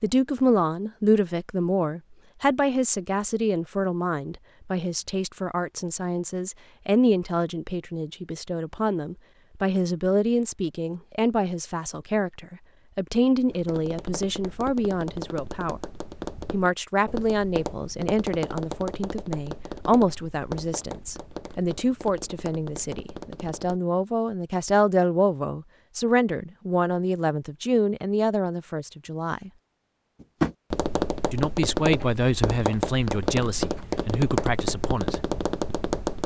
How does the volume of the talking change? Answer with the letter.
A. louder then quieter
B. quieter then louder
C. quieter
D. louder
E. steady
E.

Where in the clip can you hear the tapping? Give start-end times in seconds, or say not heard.
13.4-23.8, 30.2-36.2.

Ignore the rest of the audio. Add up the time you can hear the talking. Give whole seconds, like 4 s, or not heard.
33 s.